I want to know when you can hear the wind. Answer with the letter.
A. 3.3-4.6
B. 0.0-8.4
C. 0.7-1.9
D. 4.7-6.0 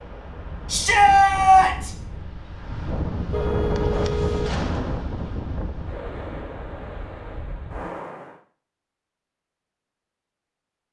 B.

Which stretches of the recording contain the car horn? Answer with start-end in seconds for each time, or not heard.
3.3-4.6.